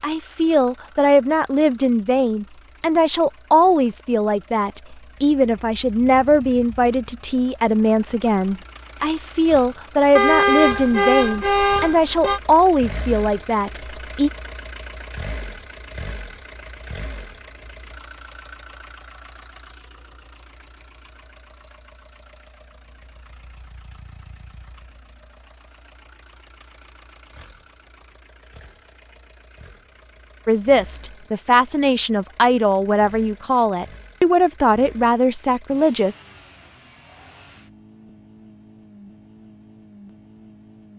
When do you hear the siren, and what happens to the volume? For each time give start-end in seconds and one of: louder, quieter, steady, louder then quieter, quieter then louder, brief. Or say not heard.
not heard.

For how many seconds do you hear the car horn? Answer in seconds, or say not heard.
2 s.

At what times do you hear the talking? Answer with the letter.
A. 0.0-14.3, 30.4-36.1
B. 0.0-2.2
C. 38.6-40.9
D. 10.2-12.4
A.